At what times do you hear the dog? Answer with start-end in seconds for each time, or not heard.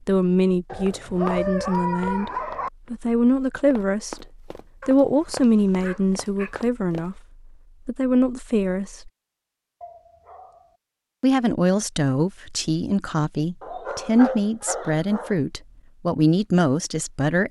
0.7-2.7, 4.8-6.5, 9.8-10.8, 13.6-15.4.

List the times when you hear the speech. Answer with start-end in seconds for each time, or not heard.
0.1-2.3, 2.9-4.2, 4.8-7.2, 7.8-9.1, 11.2-17.4.